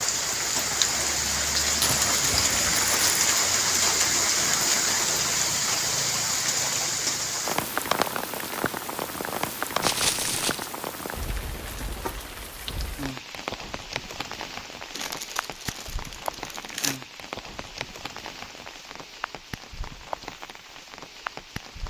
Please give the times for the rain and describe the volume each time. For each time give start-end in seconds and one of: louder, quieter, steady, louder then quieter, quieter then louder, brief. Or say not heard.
0.0-21.8 quieter.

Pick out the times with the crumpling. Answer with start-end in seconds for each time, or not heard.
1.8-3.3, 9.8-10.7, 14.9-17.0.